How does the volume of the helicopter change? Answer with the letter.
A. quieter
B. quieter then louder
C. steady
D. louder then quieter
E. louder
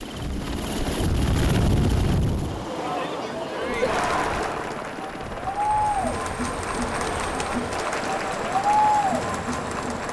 B.